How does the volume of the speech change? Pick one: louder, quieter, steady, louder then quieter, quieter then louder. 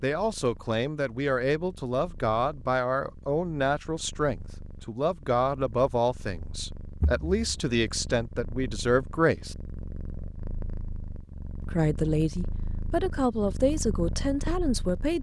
steady.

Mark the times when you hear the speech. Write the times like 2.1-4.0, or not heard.
0.0-9.6, 11.7-15.1.